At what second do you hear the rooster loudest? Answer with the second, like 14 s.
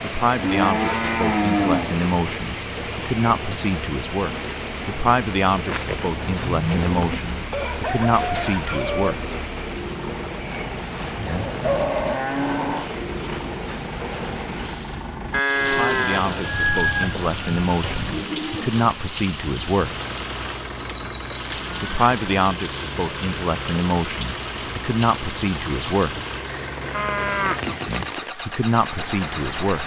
17 s.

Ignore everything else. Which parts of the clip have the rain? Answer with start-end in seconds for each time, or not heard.
0.0-29.8.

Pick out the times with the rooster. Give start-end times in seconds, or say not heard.
7.5-9.2, 16.4-18.2.